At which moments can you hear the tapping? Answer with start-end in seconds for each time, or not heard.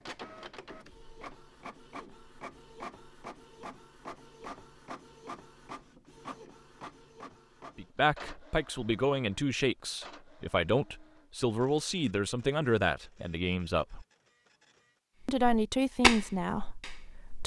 15.2-17.4.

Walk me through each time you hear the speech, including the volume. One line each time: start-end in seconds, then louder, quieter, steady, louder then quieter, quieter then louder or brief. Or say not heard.
7.8-14.1 steady
15.2-17.4 brief.